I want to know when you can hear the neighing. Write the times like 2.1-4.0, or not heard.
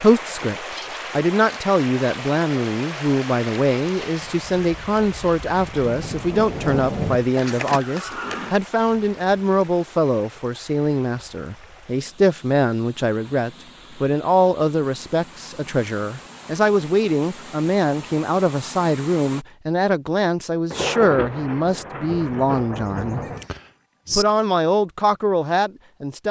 7.3-8.6, 23.2-24.2.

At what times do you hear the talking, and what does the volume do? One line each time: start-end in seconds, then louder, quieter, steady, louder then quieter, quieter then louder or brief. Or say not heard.
0.0-23.2 steady
24.1-26.2 brief.